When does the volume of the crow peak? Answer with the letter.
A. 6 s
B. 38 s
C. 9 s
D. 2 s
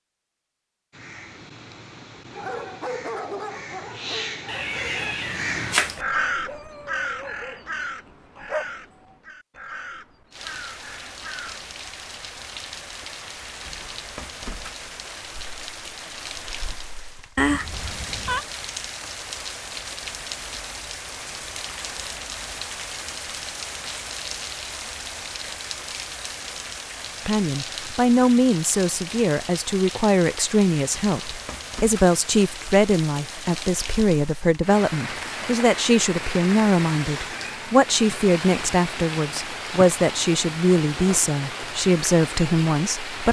A.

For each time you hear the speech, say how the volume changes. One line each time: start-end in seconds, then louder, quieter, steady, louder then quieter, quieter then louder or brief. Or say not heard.
27.2-43.2 steady.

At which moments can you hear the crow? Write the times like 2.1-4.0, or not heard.
0.9-11.6.